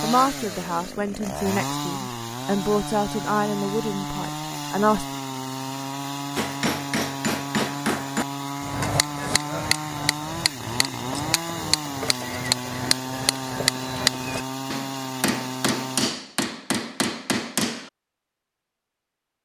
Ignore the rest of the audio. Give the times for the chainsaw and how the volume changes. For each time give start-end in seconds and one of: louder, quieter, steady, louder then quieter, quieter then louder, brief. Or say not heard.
0.0-16.1 steady.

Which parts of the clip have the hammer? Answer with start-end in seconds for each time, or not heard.
6.3-17.9.